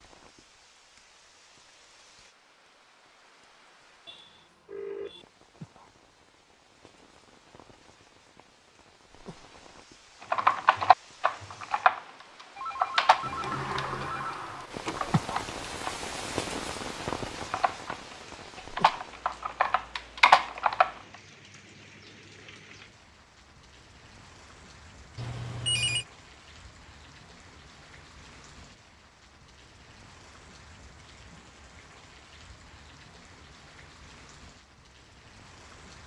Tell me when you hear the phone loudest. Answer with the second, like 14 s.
26 s.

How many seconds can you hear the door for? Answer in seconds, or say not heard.
2 s.